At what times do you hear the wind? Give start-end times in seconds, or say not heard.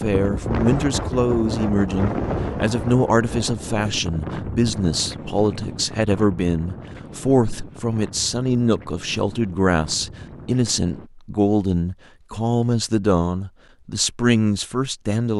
0.0-11.1.